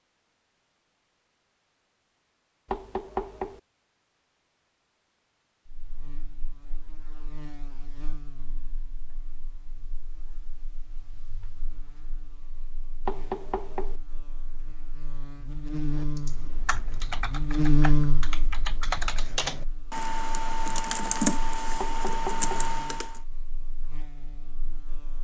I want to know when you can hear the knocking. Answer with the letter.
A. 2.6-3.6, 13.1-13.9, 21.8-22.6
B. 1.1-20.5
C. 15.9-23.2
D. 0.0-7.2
A.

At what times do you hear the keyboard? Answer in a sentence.
You can hear the keyboard from 15.9 to 23.2 s.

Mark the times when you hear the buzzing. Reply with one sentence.
The buzzing can be heard from 5.7 to 25.1 s.